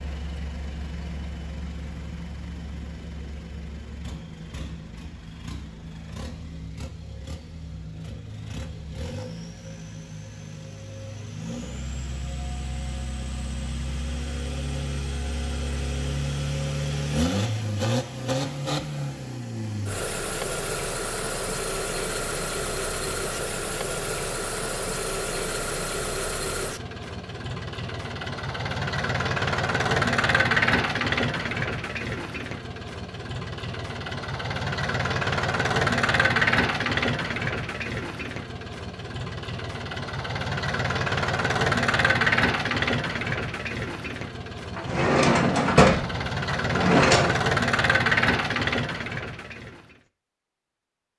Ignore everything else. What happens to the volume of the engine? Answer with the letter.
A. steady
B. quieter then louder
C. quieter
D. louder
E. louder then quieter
D.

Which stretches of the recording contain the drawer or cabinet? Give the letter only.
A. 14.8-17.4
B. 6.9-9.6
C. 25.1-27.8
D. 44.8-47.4
D.